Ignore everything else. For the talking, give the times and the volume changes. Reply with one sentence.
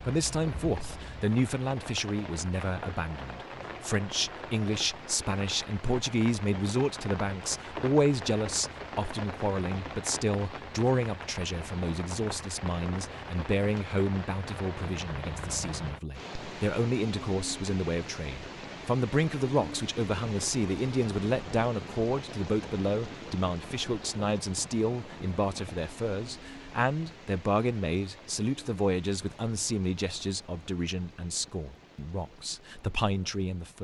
The talking can be heard from 0.0 to 33.8 s, at a steady volume.